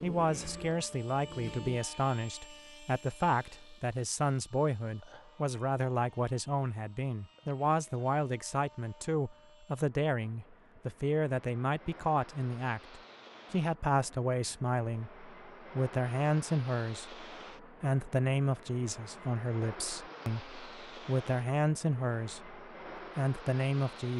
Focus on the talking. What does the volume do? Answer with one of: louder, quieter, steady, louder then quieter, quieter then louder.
steady.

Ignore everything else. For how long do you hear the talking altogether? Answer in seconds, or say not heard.
24 s.